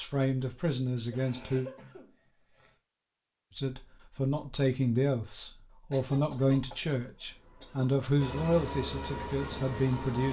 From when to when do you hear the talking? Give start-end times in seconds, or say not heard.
0.0-1.7, 3.5-10.2.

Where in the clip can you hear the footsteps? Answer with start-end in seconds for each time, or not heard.
not heard.